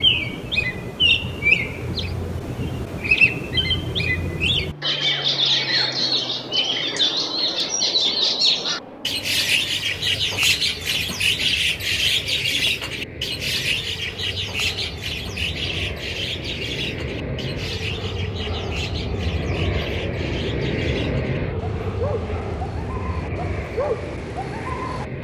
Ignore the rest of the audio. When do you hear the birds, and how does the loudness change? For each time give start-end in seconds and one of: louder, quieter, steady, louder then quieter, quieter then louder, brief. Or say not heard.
0.0-25.1 quieter.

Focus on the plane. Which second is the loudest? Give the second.
21 s.